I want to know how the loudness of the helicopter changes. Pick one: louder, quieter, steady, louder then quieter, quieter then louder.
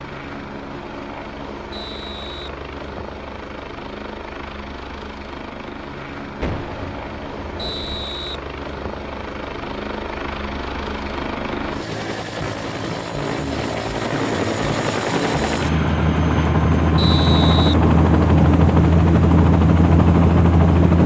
louder.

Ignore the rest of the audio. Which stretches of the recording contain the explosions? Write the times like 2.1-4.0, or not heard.
6.4-8.1.